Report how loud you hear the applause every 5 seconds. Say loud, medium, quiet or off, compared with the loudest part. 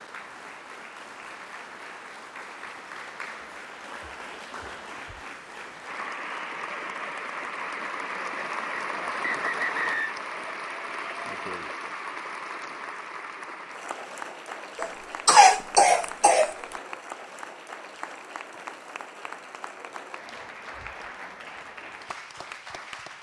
medium, loud, loud, medium, medium.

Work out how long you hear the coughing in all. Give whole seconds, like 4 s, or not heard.
2 s.